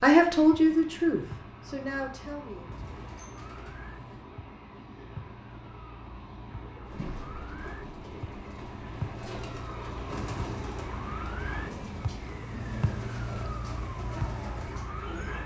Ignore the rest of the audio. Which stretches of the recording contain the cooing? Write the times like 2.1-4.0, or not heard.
6.8-15.4.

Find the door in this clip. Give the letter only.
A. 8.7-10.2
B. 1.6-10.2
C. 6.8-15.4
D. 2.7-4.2
D.